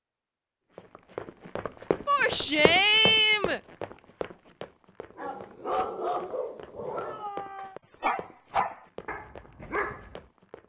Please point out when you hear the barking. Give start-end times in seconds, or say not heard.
5.2-10.2.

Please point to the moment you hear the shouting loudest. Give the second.
3 s.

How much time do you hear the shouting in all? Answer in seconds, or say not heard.
2 s.